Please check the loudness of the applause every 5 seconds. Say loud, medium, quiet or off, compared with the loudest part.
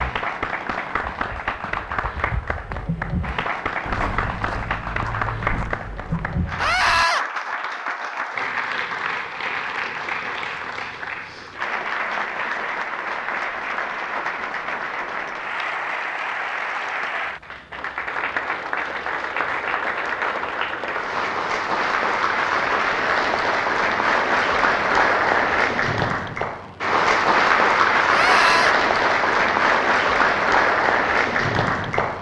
medium, medium, medium, medium, loud, loud, loud.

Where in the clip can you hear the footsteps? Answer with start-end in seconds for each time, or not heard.
1.2-7.0.